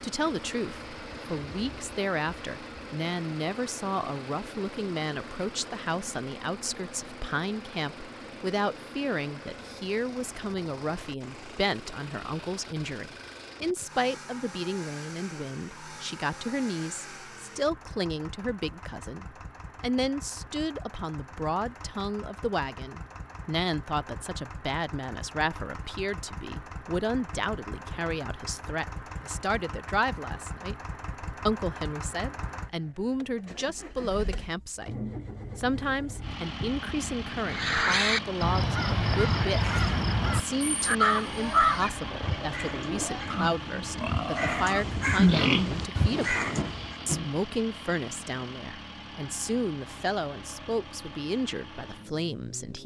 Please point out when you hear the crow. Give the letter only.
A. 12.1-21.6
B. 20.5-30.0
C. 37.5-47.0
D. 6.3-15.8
C.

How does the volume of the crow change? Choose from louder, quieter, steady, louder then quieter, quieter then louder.
quieter then louder.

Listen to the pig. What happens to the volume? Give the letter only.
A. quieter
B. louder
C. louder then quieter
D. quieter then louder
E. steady
C.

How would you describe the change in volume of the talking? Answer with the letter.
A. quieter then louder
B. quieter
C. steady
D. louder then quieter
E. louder
C.